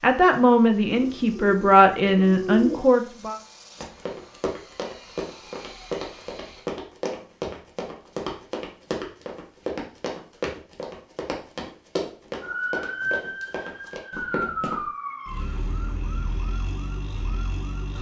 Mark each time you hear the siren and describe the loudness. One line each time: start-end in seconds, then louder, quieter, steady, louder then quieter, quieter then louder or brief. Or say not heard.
12.4-17.9 quieter.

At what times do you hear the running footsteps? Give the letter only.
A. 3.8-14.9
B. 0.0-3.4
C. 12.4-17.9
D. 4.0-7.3
A.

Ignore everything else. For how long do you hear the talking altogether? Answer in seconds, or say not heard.
3 s.